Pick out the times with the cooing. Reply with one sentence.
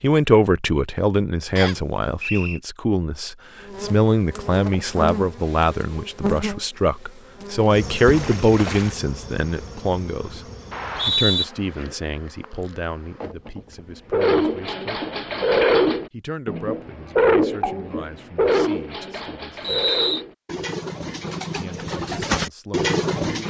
The cooing can be heard from 14.1 to 23.4 s.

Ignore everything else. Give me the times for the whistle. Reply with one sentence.
You can hear the whistle from 1.6 to 2.6 s, from 10.7 to 11.4 s and from 19.6 to 20.2 s.